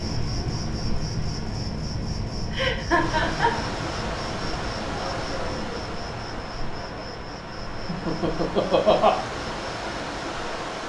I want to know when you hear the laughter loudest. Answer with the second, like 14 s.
9 s.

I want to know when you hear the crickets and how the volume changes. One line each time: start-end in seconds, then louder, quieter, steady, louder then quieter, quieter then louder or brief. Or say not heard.
0.0-10.7 quieter.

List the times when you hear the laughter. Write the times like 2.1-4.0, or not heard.
2.5-3.6, 7.8-9.2.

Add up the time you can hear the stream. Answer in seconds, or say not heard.
8 s.